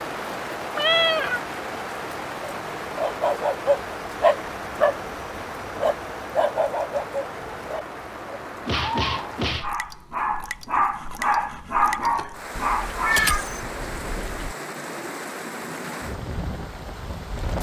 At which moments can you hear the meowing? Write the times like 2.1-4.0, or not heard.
0.8-1.4, 8.7-9.7, 12.6-14.6.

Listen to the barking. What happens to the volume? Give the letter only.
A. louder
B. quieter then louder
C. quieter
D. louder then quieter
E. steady
B.